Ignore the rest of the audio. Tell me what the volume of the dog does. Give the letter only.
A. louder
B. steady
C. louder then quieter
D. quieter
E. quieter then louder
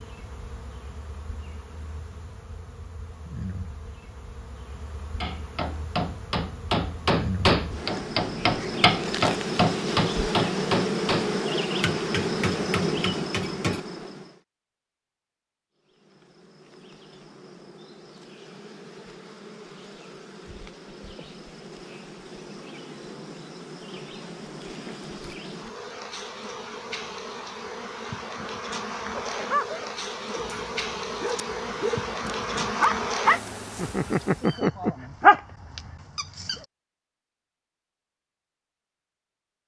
A.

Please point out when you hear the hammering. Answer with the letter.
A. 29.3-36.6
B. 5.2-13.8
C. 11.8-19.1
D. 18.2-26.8
B.